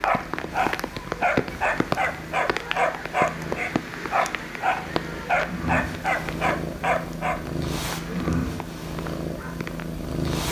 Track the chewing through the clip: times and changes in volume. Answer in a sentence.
You can't hear the chewing here.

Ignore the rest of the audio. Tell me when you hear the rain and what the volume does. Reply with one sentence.
The rain can be heard from 0.0 to 10.3 s, getting quieter.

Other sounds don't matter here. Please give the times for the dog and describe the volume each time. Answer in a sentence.
You can hear the dog from 0.0 to 7.4 s, at a steady volume.